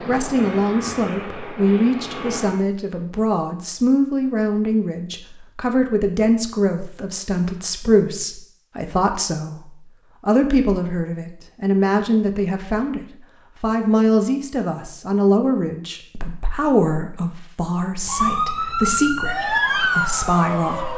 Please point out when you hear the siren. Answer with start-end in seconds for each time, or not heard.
18.1-20.9.